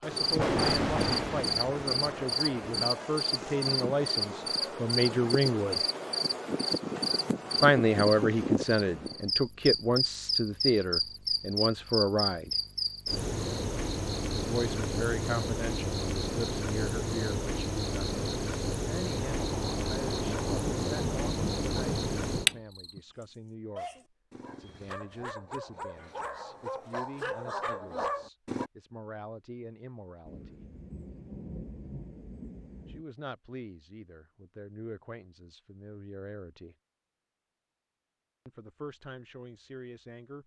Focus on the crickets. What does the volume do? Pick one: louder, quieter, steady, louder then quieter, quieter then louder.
steady.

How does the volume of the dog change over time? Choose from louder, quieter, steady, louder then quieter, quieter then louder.
louder.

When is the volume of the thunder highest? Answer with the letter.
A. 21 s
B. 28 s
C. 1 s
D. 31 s
C.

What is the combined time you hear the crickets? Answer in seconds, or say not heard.
23 s.